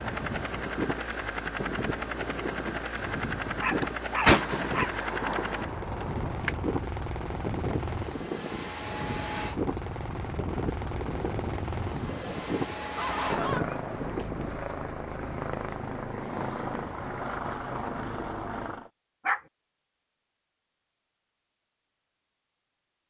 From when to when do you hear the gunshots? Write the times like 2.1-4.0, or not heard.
3.8-6.5.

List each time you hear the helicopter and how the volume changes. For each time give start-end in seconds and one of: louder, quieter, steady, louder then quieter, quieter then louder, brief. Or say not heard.
0.0-18.9 steady.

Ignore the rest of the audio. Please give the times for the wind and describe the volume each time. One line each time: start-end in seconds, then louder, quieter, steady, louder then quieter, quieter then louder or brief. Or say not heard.
0.0-14.7 steady.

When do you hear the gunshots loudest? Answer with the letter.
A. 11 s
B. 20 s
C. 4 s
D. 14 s
C.